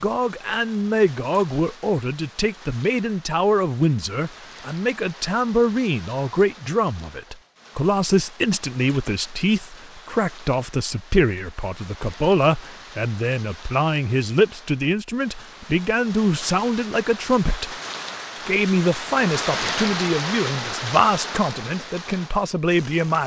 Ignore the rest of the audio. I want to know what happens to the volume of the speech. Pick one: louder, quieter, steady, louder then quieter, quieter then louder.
steady.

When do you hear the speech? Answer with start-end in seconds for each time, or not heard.
0.0-17.8, 18.4-23.2.